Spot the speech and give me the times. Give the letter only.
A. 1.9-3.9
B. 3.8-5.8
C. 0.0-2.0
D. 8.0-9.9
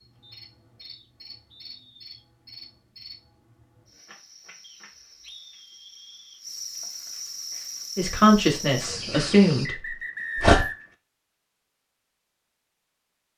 D.